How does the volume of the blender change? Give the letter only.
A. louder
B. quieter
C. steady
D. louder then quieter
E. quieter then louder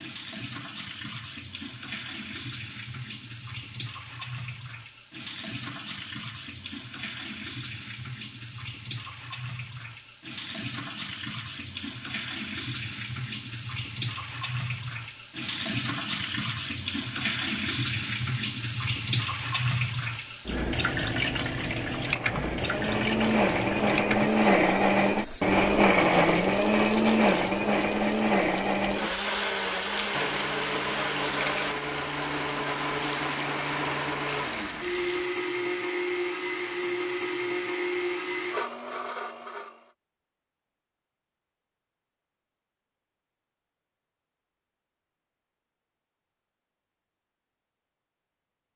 B.